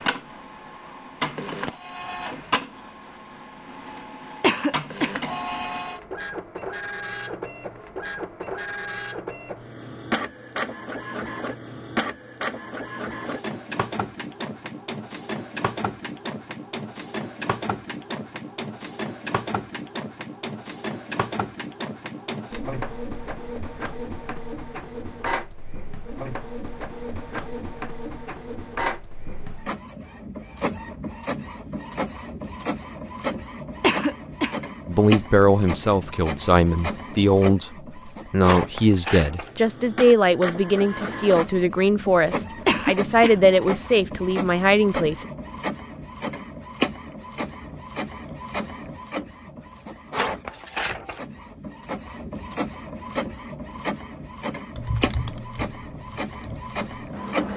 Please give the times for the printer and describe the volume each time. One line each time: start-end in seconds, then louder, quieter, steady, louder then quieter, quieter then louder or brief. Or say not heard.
0.0-57.5 steady.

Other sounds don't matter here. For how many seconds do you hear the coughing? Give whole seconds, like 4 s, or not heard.
2 s.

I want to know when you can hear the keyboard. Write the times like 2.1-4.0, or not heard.
54.8-57.5.